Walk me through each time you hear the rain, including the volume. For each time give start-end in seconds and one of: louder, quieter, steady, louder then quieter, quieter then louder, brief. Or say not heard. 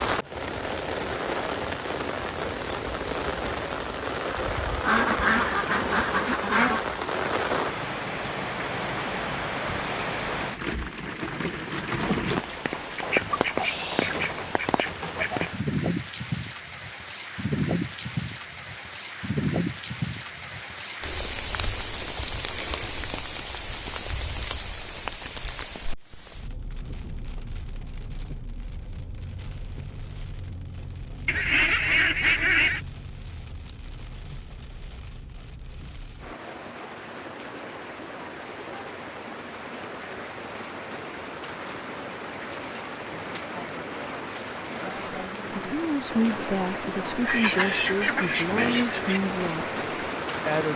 0.0-50.7 quieter then louder.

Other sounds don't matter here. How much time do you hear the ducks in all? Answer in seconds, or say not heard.
8 s.